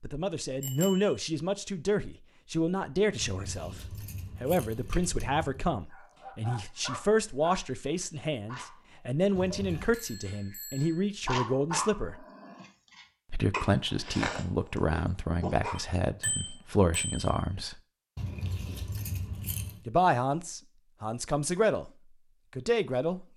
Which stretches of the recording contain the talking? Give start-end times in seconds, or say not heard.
0.0-12.2, 13.3-17.8, 19.9-21.9, 22.6-23.2.